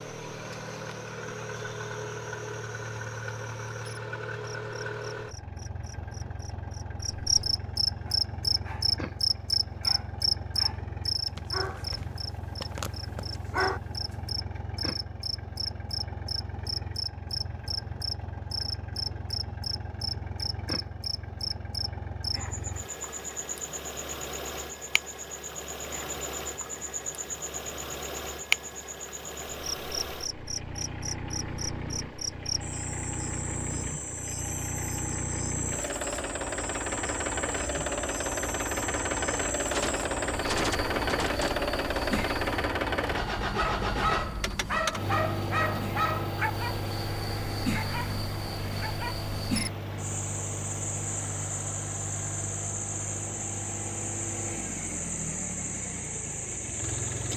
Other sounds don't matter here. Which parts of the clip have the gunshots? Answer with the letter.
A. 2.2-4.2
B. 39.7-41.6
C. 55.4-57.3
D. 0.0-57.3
B.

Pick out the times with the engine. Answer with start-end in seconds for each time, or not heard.
0.0-57.3.